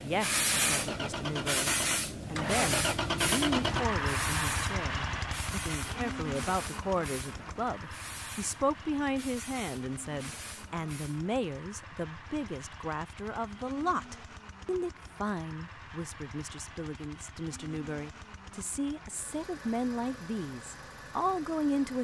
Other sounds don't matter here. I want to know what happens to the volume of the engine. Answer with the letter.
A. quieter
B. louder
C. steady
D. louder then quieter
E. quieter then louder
A.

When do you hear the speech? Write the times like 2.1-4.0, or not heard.
0.0-21.9.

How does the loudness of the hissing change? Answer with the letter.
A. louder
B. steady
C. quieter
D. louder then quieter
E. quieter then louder
C.